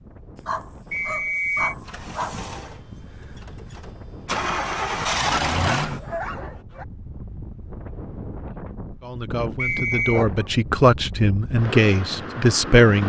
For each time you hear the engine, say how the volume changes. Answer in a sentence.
You can hear the engine from 1.9 to 6.2 s, getting quieter then louder.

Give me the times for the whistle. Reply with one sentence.
You can hear the whistle from 0.9 to 1.8 s and from 9.6 to 10.2 s.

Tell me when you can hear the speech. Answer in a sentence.
The speech can be heard from 9.0 to 13.0 s.